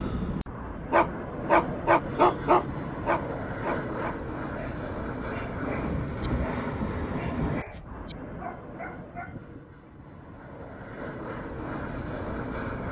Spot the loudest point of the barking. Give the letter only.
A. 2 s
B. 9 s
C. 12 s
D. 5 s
A.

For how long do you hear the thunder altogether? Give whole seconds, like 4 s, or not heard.
2 s.